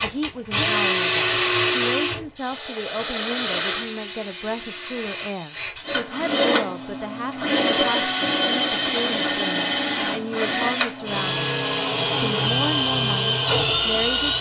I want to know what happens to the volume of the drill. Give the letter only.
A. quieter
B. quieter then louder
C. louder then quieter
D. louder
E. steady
B.